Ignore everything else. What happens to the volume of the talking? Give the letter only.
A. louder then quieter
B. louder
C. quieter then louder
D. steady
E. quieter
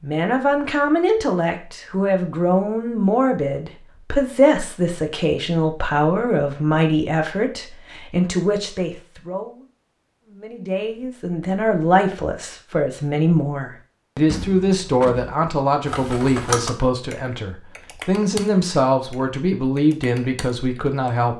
D.